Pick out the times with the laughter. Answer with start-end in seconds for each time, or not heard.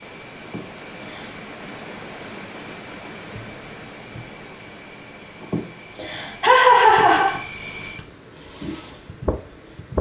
0.4-1.4, 5.4-7.4.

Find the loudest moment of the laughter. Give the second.
7 s.